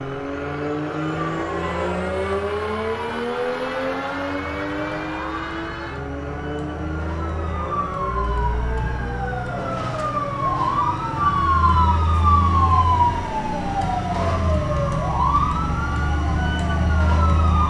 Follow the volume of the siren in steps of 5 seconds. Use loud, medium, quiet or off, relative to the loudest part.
quiet, medium, loud, loud.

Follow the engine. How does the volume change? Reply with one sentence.
The volume of the engine goes down.